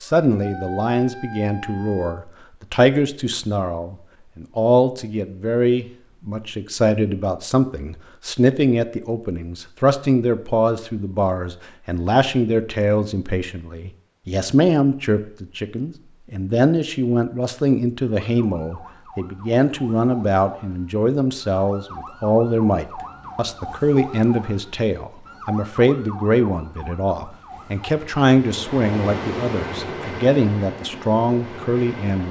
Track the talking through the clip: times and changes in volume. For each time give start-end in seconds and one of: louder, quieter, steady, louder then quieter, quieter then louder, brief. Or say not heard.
0.0-32.2 steady.